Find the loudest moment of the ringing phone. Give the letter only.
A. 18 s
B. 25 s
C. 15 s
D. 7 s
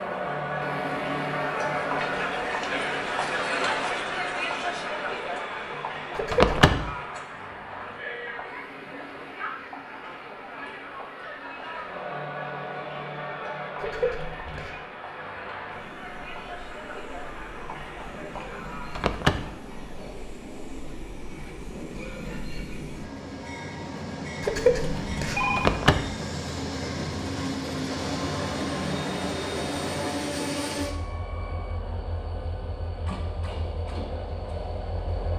B.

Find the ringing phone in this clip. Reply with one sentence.
The ringing phone can be heard from 6.2 to 6.8 s, from 13.8 to 14.8 s and from 24.4 to 25.7 s.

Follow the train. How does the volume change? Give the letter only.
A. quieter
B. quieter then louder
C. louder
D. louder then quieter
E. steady
B.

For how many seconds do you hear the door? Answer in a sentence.
The door can be heard for 2 seconds in total.